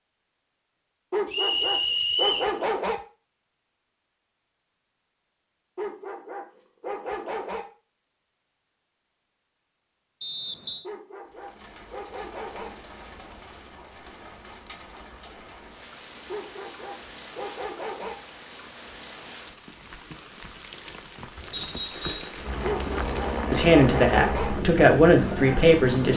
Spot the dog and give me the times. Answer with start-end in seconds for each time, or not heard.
1.1-3.0, 5.8-7.7, 10.8-12.7, 16.2-18.1, 22.6-24.5.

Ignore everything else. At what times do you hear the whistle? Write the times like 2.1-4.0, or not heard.
1.3-2.5, 10.2-10.8, 21.5-22.4.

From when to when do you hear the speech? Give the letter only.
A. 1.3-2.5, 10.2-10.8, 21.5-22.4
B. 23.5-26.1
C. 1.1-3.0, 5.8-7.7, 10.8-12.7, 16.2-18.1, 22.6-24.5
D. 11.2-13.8
B.